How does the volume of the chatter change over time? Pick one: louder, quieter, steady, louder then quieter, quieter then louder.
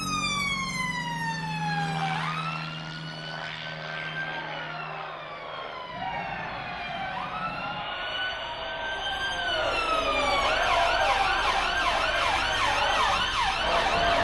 louder.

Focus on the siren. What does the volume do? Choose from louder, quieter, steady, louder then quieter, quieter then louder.
quieter then louder.